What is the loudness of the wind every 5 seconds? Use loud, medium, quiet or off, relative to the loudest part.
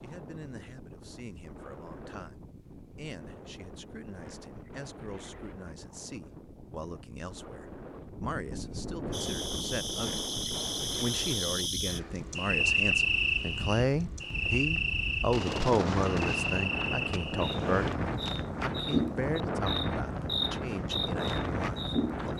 quiet, medium, medium, loud, loud.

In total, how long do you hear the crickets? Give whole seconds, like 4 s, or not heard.
13 s.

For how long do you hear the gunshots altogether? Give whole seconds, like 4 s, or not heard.
2 s.